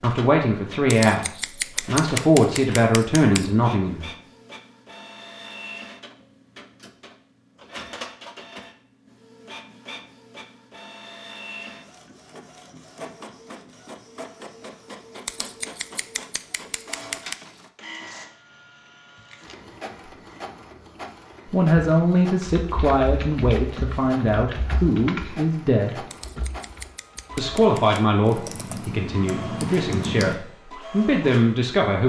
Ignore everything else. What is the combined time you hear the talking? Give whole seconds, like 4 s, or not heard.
13 s.